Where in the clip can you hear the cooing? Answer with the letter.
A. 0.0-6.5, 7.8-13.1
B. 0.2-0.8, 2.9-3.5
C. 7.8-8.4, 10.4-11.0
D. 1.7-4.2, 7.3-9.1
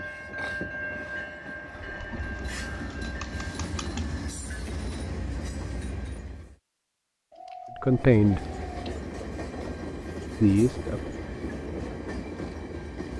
D.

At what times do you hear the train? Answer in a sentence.
The train can be heard from 0.0 to 6.5 s and from 7.8 to 13.1 s.